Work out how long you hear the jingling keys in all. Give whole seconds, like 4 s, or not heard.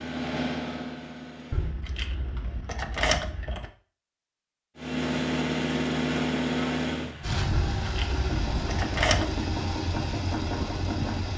4 s.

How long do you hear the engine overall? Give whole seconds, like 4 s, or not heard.
8 s.